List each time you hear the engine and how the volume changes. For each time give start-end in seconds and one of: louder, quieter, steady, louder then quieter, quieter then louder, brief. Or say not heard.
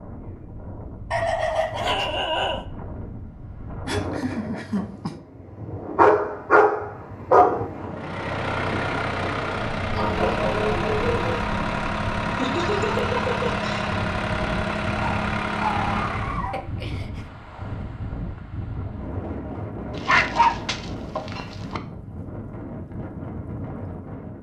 7.9-16.5 steady.